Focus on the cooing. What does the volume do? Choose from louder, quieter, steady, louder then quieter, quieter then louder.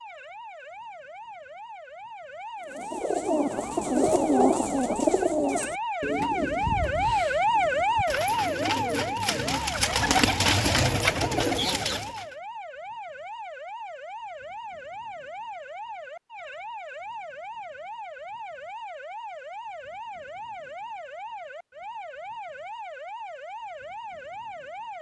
quieter then louder.